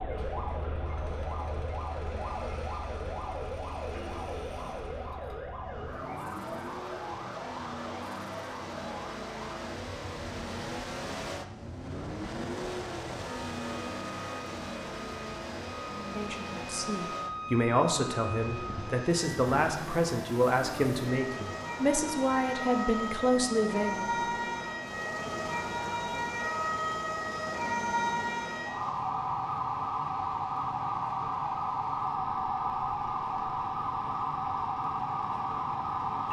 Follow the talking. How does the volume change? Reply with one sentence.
The volume of the talking stays about the same.